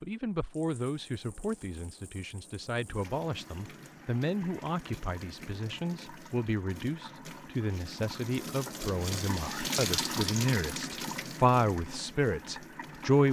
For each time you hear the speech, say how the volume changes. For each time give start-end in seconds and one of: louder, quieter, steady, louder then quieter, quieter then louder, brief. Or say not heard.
0.0-13.2 louder.